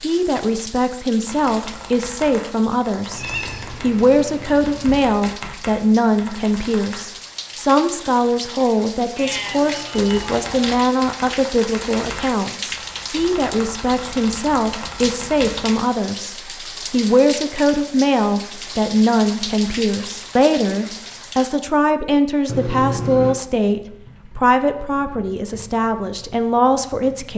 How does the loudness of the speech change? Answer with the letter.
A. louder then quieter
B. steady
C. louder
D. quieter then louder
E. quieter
B.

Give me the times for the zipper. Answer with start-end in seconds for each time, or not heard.
not heard.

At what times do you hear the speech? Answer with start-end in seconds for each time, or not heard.
0.0-27.3.